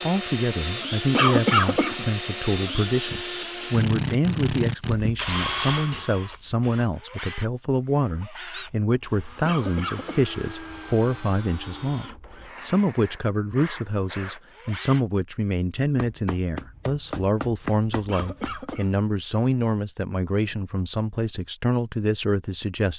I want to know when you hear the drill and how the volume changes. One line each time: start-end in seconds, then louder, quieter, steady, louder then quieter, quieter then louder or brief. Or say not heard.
0.0-15.1 quieter.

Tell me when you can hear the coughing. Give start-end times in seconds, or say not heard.
1.1-2.0, 9.4-10.2, 18.1-19.0.